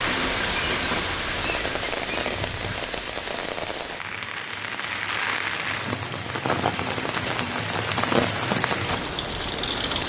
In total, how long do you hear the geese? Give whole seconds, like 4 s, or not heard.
3 s.